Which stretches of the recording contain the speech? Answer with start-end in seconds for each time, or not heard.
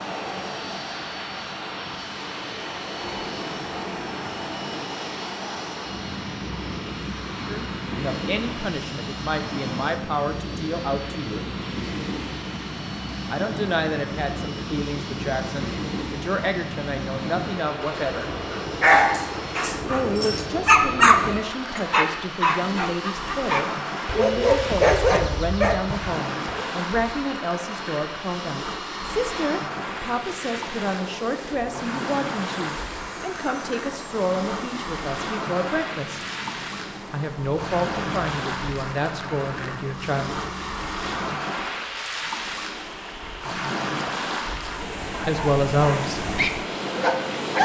7.5-11.4, 13.3-18.3, 19.9-36.2, 37.1-40.4, 45.2-46.2.